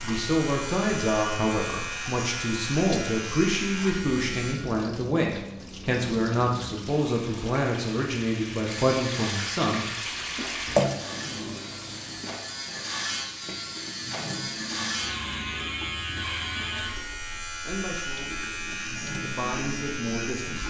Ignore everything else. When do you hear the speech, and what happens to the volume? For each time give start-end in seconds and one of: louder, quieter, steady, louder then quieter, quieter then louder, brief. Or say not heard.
0.0-9.8 steady
17.6-20.6 brief.